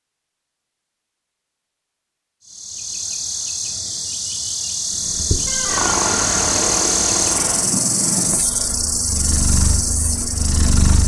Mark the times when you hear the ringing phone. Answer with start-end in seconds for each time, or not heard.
not heard.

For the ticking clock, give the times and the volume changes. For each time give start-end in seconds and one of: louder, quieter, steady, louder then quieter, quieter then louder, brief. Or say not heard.
not heard.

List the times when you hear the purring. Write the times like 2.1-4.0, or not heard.
5.0-11.0.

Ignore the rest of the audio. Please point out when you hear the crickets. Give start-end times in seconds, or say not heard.
2.4-11.0.